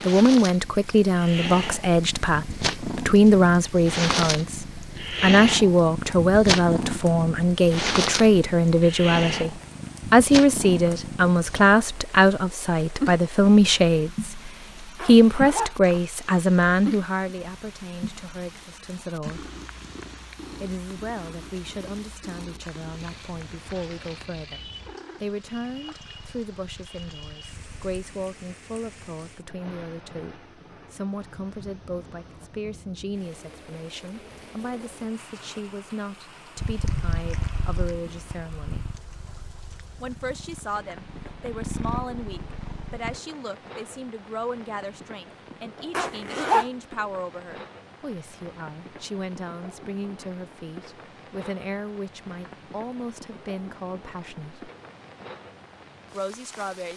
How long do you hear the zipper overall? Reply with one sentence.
You can hear the zipper for 2 seconds altogether.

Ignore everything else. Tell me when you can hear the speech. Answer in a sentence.
You can hear the speech from 0.0 to 14.4 s, from 15.1 to 19.5 s, from 20.6 to 38.9 s, from 40.0 to 54.7 s and from 56.1 to 56.9 s.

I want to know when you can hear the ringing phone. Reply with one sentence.
You can't hear the ringing phone here.